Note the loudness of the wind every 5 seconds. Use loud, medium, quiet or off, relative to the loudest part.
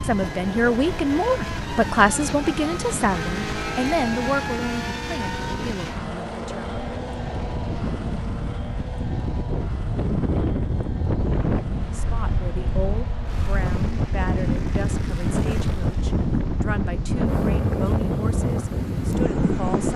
medium, medium, loud, loud.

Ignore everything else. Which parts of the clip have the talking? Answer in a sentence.
The talking can be heard from 0.0 to 6.7 s and from 11.8 to 19.9 s.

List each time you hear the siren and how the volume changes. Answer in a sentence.
You can't hear the siren here.